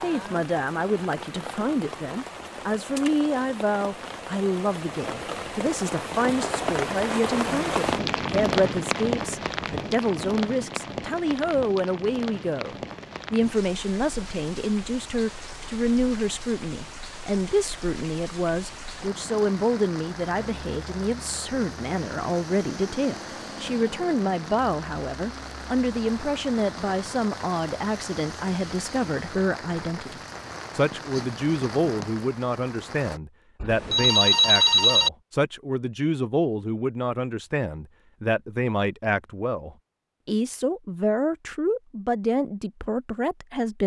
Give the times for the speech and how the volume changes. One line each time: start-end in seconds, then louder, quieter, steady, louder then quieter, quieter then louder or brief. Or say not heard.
0.0-43.8 steady.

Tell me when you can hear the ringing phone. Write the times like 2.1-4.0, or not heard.
33.6-35.1.